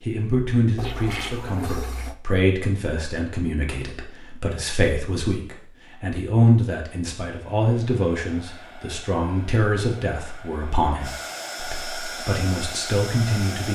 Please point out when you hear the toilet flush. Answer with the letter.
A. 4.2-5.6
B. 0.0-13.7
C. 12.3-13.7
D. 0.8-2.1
D.